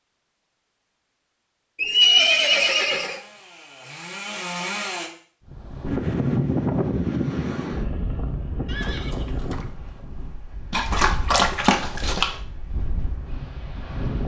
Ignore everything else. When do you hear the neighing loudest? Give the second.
2 s.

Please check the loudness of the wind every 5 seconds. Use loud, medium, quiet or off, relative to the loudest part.
off, loud, medium.